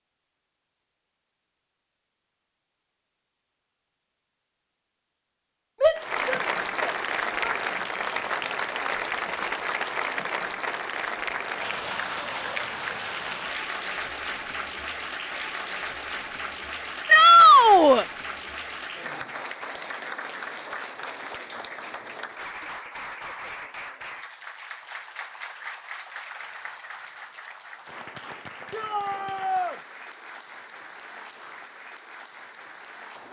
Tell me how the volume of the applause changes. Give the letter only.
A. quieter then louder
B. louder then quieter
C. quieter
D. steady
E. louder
C.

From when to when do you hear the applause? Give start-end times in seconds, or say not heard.
6.0-33.2.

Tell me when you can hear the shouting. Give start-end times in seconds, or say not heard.
5.8-7.5, 17.1-18.1, 28.7-29.8.